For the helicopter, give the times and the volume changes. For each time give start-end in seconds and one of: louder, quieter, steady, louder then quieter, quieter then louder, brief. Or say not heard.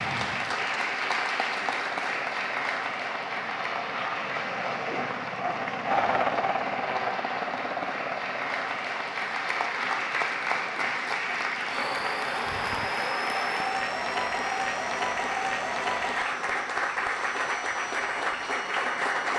0.0-19.2 louder then quieter.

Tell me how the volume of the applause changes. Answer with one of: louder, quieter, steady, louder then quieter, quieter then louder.
quieter then louder.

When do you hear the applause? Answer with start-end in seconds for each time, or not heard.
0.0-19.3.